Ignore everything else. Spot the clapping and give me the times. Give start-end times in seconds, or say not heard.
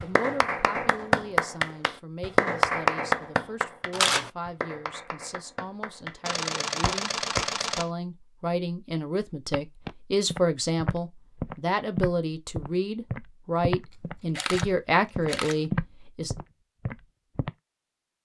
0.0-7.5.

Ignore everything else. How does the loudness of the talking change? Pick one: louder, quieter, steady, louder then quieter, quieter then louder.
louder.